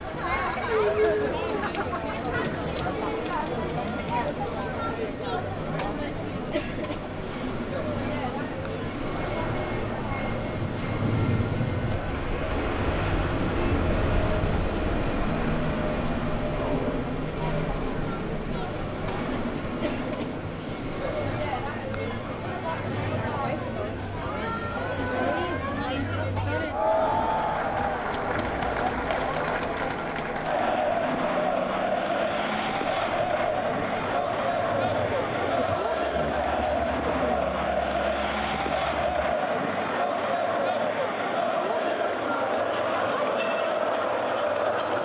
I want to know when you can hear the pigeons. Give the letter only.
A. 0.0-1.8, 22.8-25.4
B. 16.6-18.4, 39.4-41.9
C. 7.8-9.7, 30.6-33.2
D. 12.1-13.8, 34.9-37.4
D.